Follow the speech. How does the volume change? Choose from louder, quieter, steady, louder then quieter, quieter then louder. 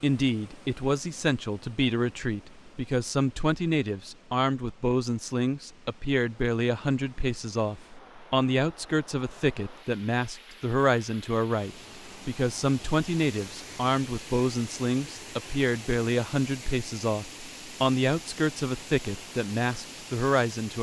steady.